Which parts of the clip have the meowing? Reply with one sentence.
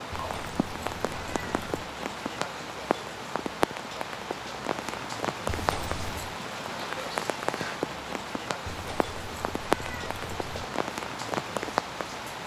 You can hear the meowing from 0.1 to 1.7 s, from 5.5 to 6.4 s and from 8.7 to 10.7 s.